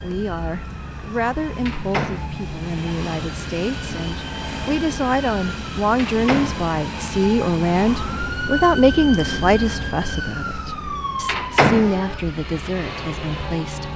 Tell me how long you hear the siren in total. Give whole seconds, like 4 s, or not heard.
14 s.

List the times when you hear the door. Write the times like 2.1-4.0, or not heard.
1.6-2.4, 6.0-6.7, 11.2-11.9.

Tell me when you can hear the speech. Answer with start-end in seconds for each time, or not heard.
0.0-13.9.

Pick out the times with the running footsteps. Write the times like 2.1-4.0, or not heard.
not heard.